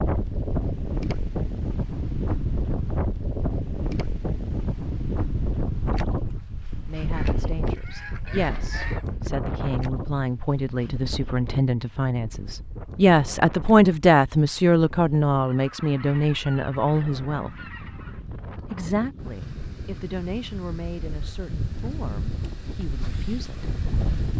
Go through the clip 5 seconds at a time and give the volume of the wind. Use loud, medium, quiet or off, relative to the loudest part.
loud, loud, medium, medium, medium.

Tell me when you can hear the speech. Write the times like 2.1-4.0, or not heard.
6.8-17.5, 18.7-23.6.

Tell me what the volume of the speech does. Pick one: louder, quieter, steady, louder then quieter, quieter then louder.
louder then quieter.